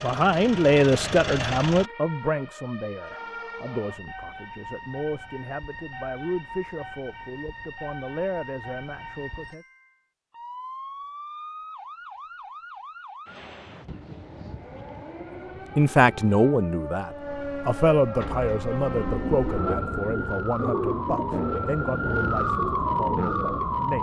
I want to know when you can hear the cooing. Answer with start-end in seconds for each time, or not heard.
18.1-23.6.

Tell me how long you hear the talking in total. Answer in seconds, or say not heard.
18 s.